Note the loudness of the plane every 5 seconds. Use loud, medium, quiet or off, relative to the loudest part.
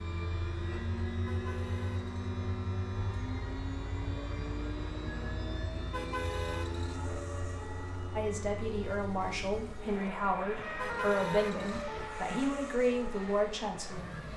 loud, loud, medium.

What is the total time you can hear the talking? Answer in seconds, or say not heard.
6 s.